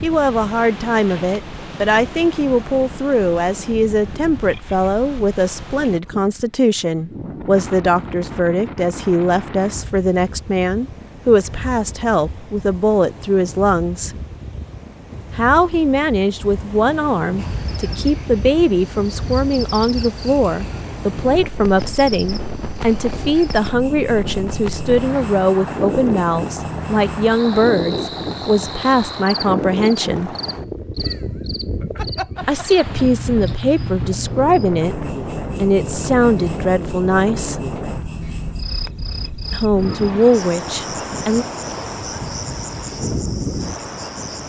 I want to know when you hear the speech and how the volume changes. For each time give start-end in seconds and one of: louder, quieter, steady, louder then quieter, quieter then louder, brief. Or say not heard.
0.0-14.1 steady
15.3-30.3 steady
32.5-37.5 steady
39.5-41.5 brief.